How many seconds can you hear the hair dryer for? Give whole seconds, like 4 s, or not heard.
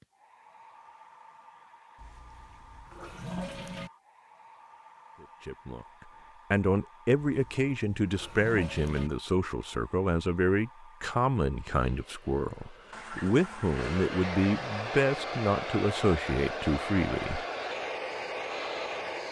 19 s.